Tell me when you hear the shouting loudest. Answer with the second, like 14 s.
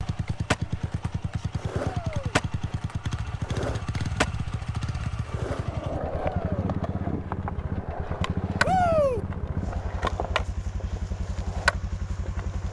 9 s.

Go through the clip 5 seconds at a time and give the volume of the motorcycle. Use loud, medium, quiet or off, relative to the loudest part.
loud, loud, medium.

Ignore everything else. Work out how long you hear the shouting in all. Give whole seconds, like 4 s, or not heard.
2 s.